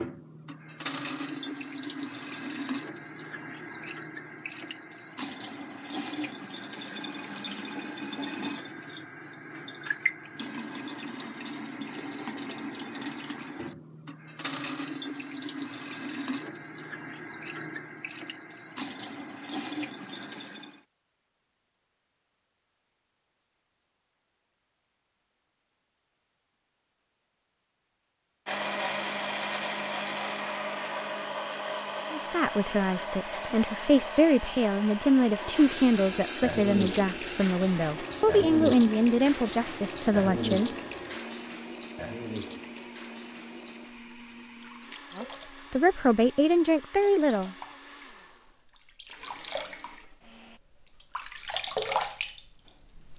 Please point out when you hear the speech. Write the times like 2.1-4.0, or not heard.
32.1-40.7, 45.1-47.5.